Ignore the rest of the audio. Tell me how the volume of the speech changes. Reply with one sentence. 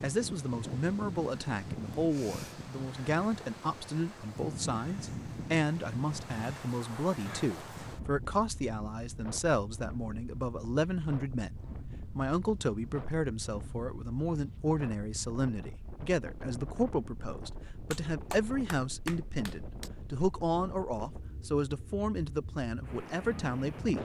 The volume of the speech stays about the same.